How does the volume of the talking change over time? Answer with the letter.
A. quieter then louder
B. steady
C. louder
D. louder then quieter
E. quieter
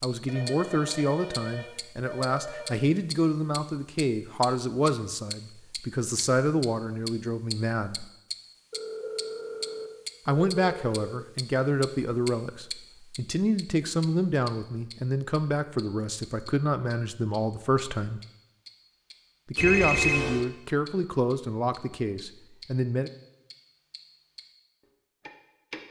B.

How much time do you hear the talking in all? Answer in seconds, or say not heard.
20 s.